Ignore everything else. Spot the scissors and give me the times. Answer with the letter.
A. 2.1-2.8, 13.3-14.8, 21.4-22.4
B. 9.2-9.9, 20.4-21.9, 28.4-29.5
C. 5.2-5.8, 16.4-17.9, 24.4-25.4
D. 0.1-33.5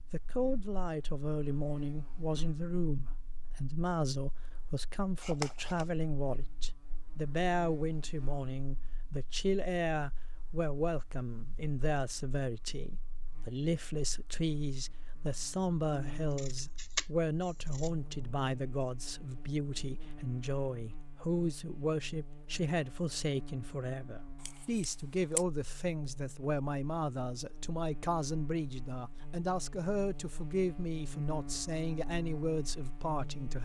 C.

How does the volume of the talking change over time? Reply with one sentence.
The volume of the talking stays about the same.